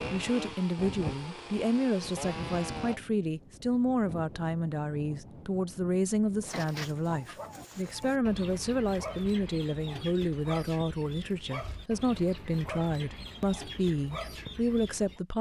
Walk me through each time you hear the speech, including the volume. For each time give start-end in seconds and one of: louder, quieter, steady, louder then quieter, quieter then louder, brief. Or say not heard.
0.1-15.3 steady.